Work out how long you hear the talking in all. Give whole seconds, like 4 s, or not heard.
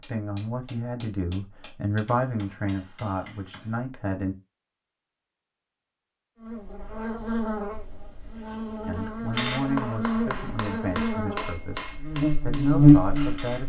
9 s.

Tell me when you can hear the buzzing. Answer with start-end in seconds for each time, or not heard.
6.4-13.6.